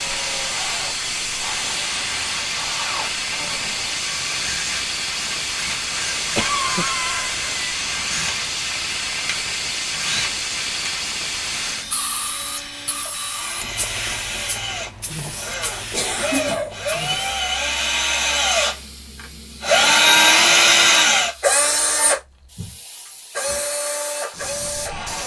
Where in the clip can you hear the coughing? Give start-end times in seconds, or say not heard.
6.3-7.8, 15.9-16.8.